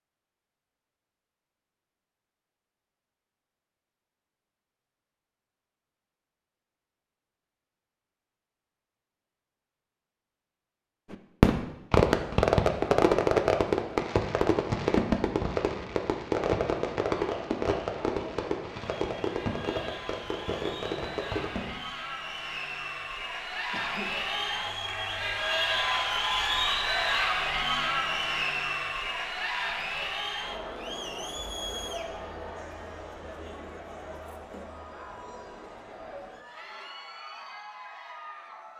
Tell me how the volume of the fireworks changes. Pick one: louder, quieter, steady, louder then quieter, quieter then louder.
quieter.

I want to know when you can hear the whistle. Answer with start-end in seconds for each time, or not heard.
not heard.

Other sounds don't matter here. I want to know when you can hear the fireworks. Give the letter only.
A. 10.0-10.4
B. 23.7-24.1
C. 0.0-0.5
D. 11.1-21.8
D.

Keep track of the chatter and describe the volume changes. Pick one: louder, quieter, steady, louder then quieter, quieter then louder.
louder then quieter.